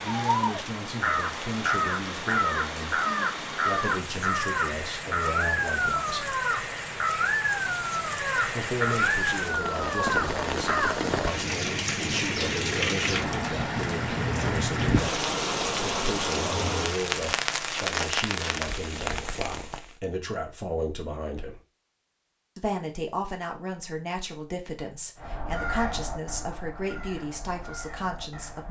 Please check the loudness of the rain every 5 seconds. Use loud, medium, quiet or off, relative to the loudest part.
medium, medium, loud, loud, off, off.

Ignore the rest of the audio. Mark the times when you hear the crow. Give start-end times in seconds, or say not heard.
0.1-10.9, 25.1-28.6.